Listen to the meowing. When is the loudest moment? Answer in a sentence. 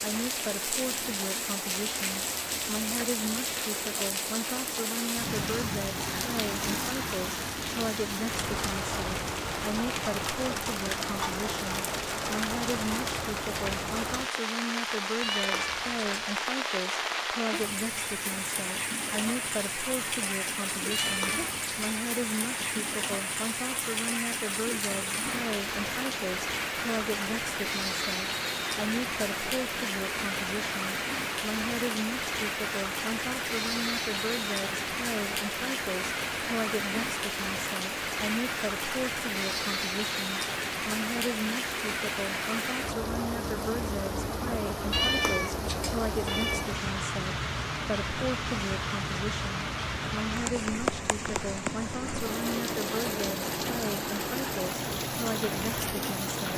The volume of the meowing peaks at 45 seconds.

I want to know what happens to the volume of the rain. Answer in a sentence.
The loudness of the rain stays about the same.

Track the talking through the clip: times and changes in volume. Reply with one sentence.
The talking can be heard from 0.0 to 56.5 s, at a steady volume.